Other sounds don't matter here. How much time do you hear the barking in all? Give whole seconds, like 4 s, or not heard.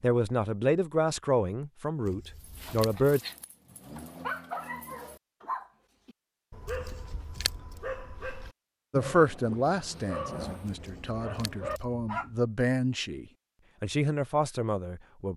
10 s.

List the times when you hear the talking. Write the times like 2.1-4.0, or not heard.
0.0-3.2, 8.9-15.3.